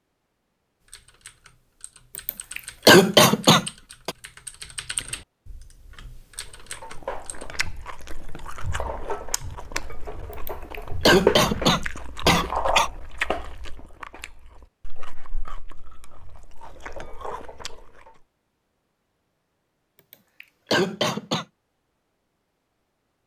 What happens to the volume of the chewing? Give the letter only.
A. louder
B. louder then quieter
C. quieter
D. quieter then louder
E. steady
B.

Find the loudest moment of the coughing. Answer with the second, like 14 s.
3 s.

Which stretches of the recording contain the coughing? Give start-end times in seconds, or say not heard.
2.1-4.1, 10.3-12.9, 19.9-21.4.